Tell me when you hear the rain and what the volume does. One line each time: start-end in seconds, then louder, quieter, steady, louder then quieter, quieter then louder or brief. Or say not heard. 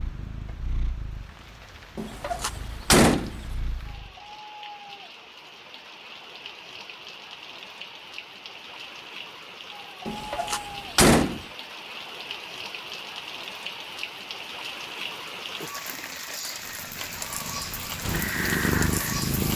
0.0-19.5 louder.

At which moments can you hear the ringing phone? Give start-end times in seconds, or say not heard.
not heard.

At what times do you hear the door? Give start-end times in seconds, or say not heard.
1.9-3.4, 10.1-11.4.